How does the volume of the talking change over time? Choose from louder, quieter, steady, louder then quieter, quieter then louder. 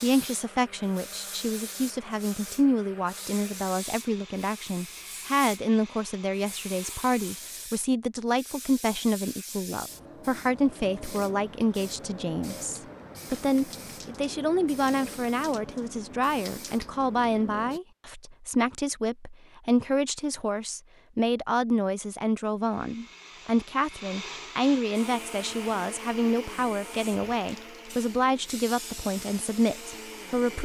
steady.